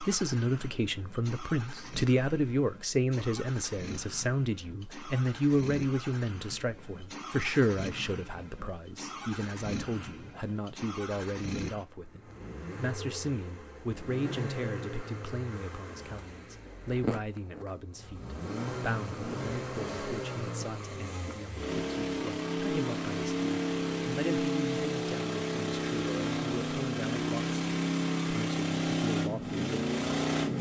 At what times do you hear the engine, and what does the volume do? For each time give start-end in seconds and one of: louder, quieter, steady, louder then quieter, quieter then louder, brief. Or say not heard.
0.0-30.5 louder.